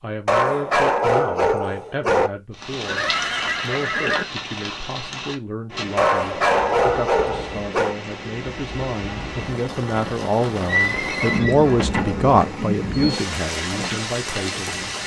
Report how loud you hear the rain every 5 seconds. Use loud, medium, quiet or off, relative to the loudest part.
loud, medium, loud.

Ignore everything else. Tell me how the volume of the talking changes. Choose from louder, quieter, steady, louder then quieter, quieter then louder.
louder.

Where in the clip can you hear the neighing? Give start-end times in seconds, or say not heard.
2.8-4.2, 10.7-12.1.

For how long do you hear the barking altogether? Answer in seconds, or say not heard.
6 s.